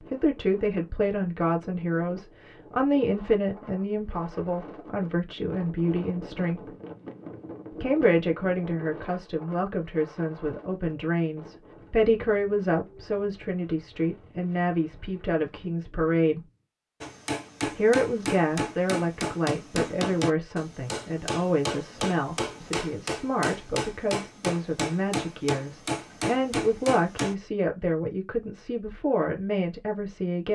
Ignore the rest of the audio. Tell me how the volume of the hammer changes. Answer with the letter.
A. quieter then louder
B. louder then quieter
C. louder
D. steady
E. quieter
D.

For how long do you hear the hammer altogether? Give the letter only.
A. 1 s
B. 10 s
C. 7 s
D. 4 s
B.